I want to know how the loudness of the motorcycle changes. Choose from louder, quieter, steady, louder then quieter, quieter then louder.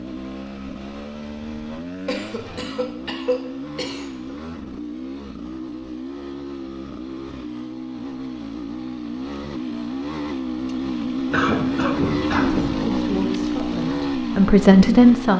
louder.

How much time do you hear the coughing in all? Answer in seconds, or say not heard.
4 s.